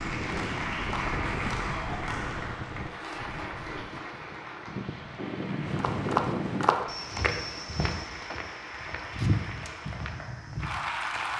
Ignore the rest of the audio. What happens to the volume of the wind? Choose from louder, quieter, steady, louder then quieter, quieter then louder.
quieter then louder.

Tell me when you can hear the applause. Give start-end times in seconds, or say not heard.
0.0-11.3.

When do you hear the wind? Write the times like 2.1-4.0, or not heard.
0.0-6.7.